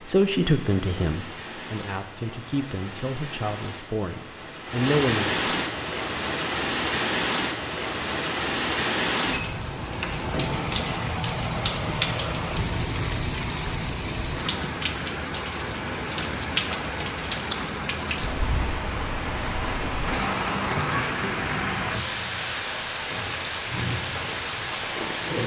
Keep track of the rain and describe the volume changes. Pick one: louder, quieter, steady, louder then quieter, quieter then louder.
louder.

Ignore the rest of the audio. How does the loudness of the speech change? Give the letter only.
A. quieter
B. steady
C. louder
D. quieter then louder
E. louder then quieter
D.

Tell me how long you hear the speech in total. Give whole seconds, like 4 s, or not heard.
5 s.